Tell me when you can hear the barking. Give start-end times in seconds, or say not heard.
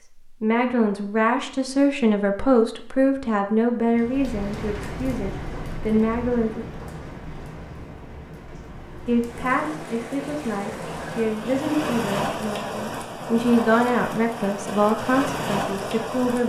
not heard.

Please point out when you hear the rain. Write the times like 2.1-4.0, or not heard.
3.9-16.4.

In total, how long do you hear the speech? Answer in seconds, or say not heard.
14 s.